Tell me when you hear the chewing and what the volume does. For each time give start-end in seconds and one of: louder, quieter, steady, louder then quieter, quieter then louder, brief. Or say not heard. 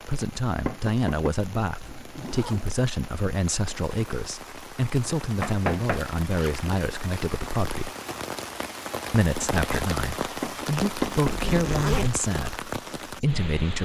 not heard.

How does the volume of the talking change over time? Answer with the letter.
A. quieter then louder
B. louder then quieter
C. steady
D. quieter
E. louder
C.